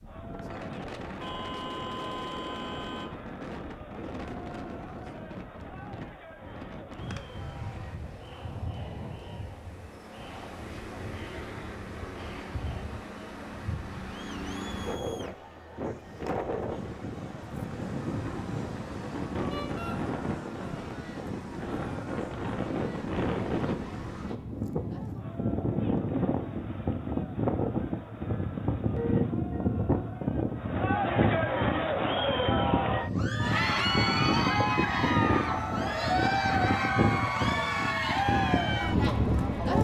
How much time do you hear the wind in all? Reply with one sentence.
The wind can be heard for 40 seconds in total.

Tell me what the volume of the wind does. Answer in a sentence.
The loudness of the wind goes up.